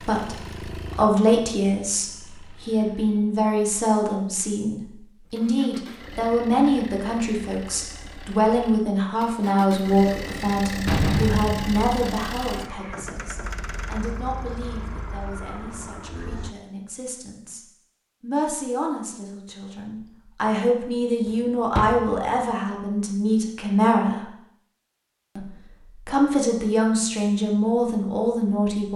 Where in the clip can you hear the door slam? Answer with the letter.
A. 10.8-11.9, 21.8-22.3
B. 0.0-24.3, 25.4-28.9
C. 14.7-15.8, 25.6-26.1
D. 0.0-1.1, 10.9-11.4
A.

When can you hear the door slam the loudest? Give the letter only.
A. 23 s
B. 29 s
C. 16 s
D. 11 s
D.